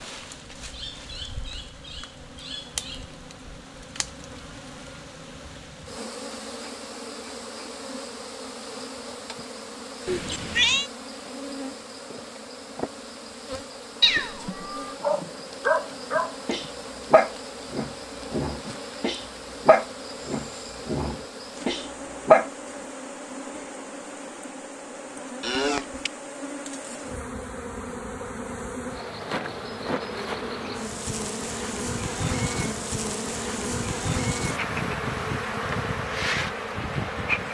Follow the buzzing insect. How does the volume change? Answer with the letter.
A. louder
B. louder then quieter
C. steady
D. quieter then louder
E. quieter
A.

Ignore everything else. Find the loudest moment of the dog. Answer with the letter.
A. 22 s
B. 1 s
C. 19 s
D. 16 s
A.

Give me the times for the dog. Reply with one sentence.
The dog can be heard from 15.0 to 22.4 s.